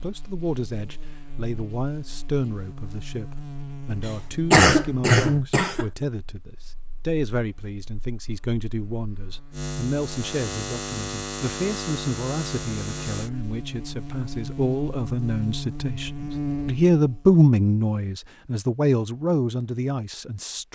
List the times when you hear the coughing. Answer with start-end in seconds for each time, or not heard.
4.0-5.8.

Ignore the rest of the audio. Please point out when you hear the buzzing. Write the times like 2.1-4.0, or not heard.
0.0-17.4.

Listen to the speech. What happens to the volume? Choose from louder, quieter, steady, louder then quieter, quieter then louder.
louder.